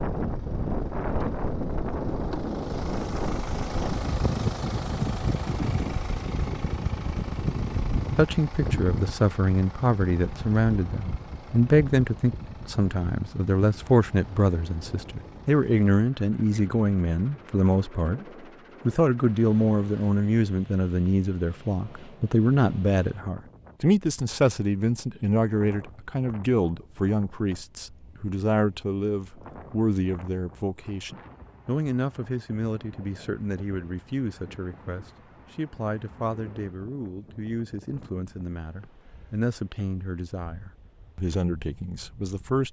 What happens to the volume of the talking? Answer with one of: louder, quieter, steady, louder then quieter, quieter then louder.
quieter.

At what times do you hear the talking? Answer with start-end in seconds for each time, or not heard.
8.2-18.2, 18.9-42.6.